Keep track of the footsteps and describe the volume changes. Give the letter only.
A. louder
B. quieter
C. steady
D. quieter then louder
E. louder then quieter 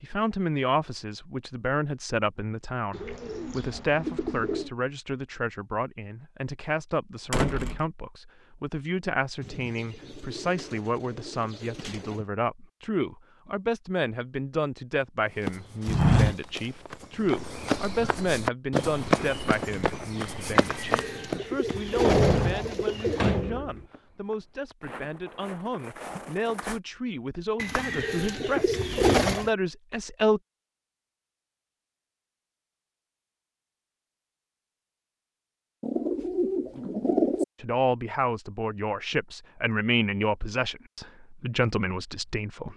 B.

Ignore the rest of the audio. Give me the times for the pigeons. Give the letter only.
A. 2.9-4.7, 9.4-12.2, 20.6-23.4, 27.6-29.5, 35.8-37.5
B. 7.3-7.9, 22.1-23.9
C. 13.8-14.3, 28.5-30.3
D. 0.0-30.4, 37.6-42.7
A.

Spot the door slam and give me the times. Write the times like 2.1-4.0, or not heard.
7.3-7.9, 22.1-23.9.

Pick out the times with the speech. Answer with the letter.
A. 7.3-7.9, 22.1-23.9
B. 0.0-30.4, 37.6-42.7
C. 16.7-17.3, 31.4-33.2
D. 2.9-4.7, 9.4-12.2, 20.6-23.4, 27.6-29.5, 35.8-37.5
B.